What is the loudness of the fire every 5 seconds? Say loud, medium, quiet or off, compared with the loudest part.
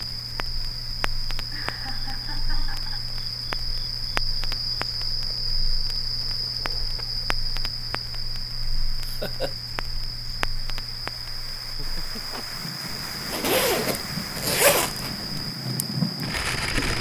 medium, quiet, medium, loud.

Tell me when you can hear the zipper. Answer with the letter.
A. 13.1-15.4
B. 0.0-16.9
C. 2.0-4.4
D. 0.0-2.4
A.